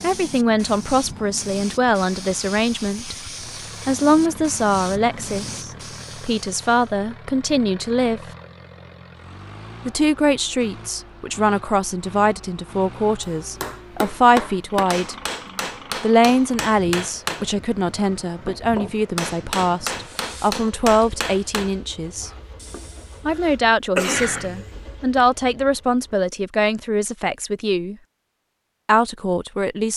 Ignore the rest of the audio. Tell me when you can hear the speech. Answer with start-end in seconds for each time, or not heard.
0.0-3.1, 3.9-8.2, 9.8-15.2, 16.0-22.3, 23.2-27.9, 28.9-29.9.